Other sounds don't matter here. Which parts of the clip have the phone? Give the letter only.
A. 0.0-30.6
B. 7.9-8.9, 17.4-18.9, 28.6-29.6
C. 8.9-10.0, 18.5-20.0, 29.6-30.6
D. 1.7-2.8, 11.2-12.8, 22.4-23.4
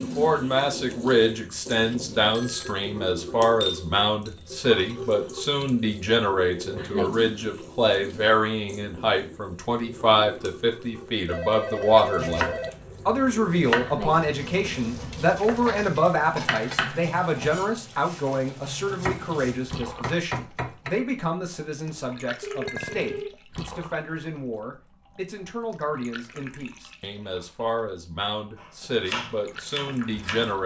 D.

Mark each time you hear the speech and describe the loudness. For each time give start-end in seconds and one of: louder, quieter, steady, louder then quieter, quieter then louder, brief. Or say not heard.
0.0-30.6 quieter.